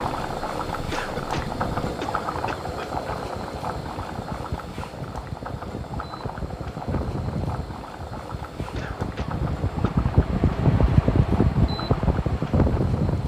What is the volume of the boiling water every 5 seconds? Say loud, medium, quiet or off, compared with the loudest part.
loud, medium, medium.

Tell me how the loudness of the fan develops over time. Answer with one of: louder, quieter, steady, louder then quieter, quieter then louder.
louder.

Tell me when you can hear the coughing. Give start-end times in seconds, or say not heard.
0.9-2.7, 8.8-10.0.